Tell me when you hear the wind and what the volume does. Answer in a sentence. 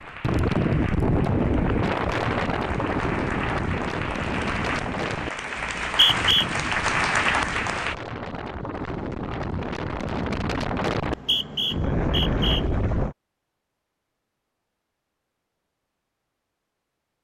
The wind can be heard from 0.0 to 13.2 s, getting quieter then louder.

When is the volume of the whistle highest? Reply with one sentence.
The volume of the whistle peaks at 6 seconds.